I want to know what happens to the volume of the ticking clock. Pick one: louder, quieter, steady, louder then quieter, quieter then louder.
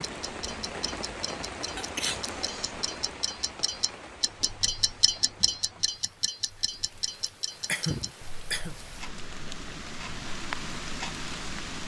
louder then quieter.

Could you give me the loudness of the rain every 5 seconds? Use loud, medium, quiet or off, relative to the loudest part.
loud, medium, loud.